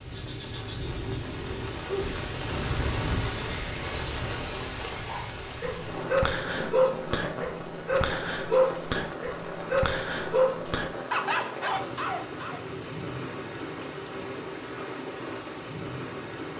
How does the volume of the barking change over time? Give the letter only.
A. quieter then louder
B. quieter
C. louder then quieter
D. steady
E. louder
D.